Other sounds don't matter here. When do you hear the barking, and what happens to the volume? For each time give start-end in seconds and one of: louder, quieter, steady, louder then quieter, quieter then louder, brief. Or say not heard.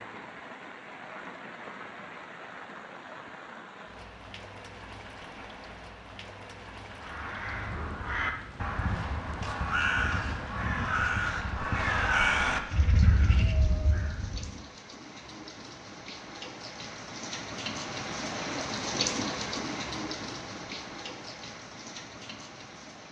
not heard.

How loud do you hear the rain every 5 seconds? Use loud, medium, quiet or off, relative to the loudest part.
medium, medium, medium, loud, medium.